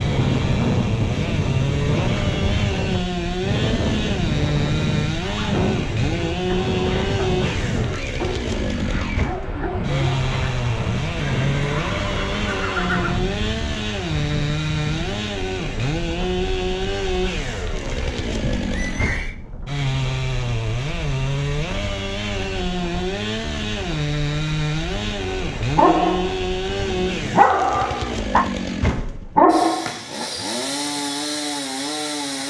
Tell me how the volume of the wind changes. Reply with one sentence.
The loudness of the wind goes down.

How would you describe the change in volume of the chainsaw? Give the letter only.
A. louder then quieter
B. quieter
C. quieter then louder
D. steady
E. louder
D.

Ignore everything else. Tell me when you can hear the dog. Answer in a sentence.
The dog can be heard from 5.2 to 10.6 s and from 25.2 to 30.0 s.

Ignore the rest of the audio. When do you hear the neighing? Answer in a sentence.
You can hear the neighing from 11.2 to 13.2 s and from 18.4 to 19.4 s.